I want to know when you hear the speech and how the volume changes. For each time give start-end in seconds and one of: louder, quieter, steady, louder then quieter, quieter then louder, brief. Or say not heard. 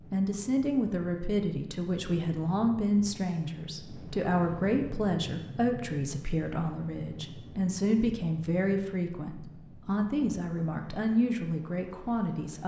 0.1-12.6 steady.